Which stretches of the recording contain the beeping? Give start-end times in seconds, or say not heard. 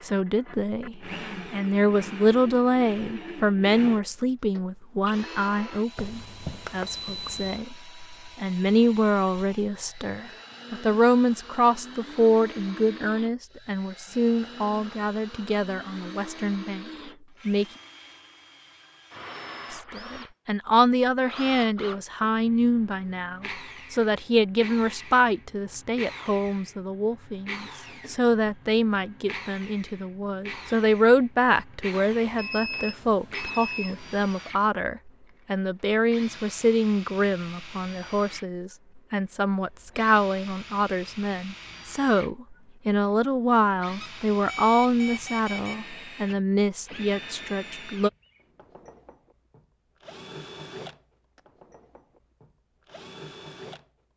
6.0-7.6, 32.1-34.2, 44.0-45.8.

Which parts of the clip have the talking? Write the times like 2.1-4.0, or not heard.
0.0-17.6, 19.7-48.1.